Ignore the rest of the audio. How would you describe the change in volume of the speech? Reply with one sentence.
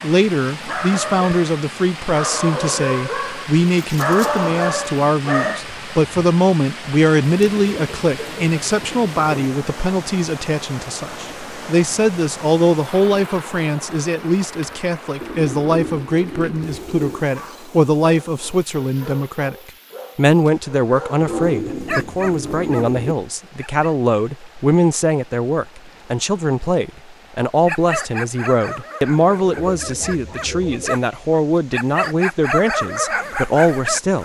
The loudness of the speech stays about the same.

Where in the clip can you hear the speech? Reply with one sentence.
The speech can be heard from 0.0 to 34.2 s.